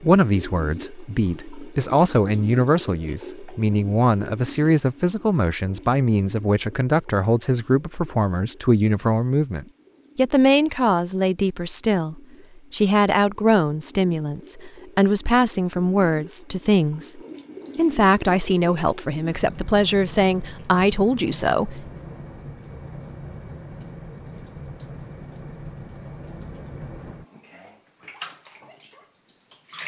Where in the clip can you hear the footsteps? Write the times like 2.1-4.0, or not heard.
not heard.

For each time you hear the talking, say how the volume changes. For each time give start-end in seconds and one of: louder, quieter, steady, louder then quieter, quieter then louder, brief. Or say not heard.
0.0-21.9 steady.